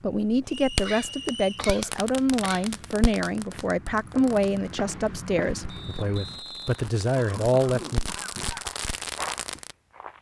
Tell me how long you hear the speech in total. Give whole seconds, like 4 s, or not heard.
8 s.